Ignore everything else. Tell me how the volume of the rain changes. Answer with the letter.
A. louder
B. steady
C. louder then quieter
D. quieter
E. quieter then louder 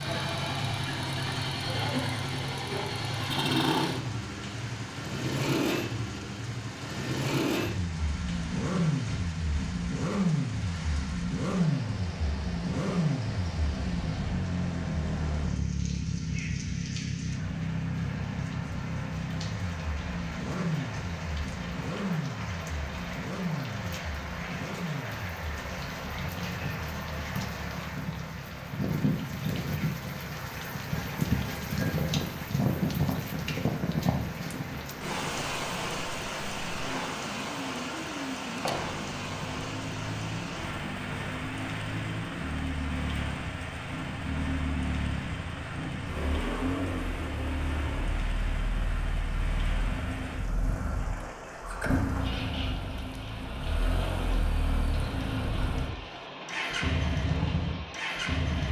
C.